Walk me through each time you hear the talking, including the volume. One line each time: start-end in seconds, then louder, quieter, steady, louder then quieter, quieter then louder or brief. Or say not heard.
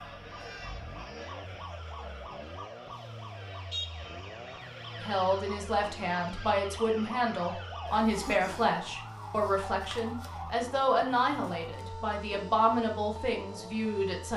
5.0-14.3 steady.